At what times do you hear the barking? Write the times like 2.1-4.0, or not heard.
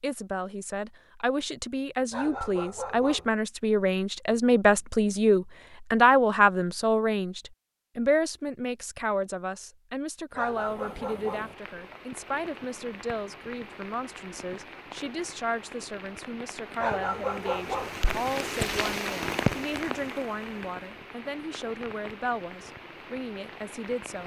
2.1-3.3, 10.3-11.6, 16.8-18.0.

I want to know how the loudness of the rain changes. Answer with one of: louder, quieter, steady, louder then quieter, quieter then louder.
louder then quieter.